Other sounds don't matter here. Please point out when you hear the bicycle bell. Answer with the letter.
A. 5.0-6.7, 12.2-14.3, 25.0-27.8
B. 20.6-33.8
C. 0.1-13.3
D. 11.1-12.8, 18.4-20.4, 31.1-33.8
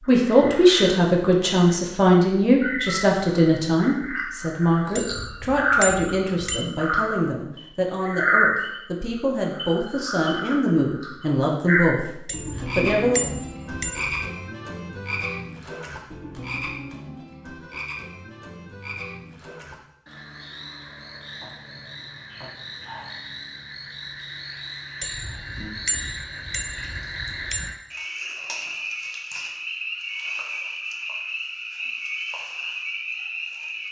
A.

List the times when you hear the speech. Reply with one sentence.
The speech can be heard from 0.1 to 13.3 s.